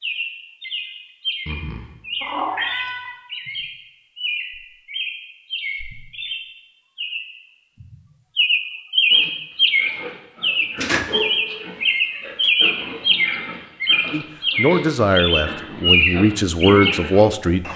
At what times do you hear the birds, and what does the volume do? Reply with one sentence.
You can hear the birds from 0.0 to 17.7 s, getting louder.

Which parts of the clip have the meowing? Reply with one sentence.
You can hear the meowing from 1.4 to 3.1 s and from 10.8 to 12.5 s.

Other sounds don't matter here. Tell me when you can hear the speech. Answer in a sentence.
You can hear the speech from 14.1 to 17.6 s.